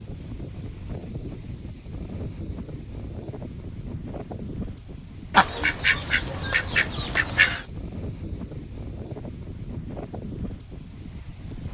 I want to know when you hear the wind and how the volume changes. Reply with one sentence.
The wind can be heard from 0.0 to 11.6 s, at a steady volume.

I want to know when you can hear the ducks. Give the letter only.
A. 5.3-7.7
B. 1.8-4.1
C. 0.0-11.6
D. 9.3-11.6
A.